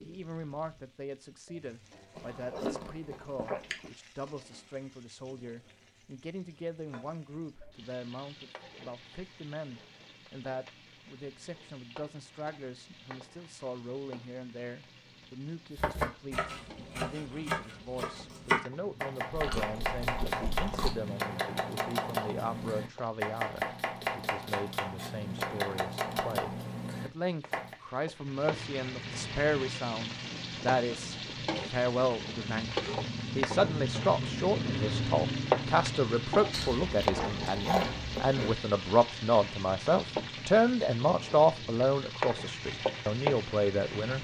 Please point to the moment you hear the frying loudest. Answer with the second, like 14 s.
35 s.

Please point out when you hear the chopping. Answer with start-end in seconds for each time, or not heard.
15.8-27.8.